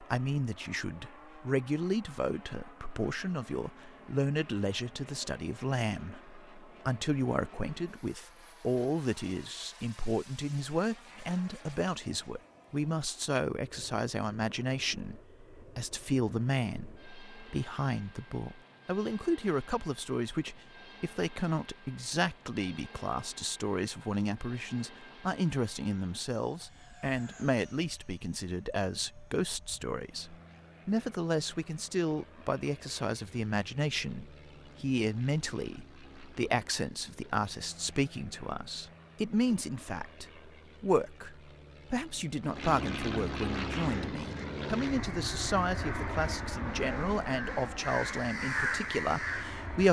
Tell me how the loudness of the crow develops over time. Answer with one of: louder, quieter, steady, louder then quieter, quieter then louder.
louder.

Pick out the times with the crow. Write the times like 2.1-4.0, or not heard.
43.8-49.8.